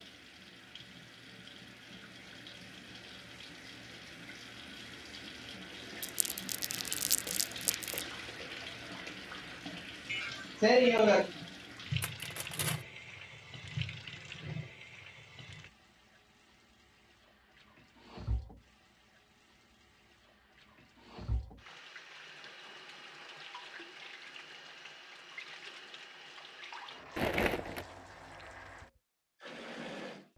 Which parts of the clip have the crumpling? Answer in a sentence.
The crumpling can be heard from 6.0 to 8.0 s, from 12.0 to 12.8 s and from 27.1 to 27.9 s.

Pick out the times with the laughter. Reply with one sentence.
The laughter can be heard from 10.1 to 11.3 s.